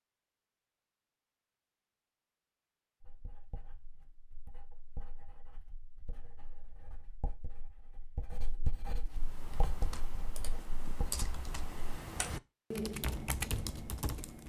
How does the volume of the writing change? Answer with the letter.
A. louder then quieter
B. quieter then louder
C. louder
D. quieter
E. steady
C.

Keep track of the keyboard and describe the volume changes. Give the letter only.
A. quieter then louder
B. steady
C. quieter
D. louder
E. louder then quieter
D.